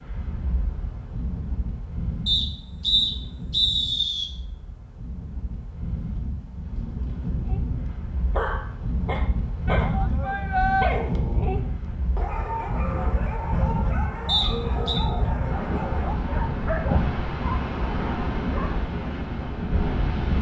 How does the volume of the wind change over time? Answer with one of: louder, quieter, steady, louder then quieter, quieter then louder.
louder.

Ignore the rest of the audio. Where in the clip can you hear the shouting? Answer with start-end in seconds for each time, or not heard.
9.7-10.9.